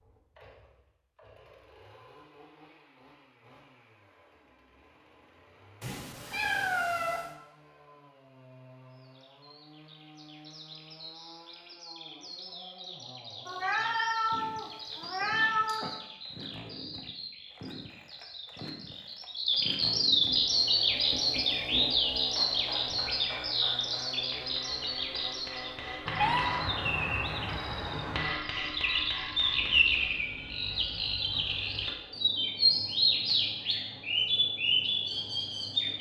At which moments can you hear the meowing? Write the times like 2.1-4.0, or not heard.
5.8-7.2, 13.4-15.9, 26.1-28.4.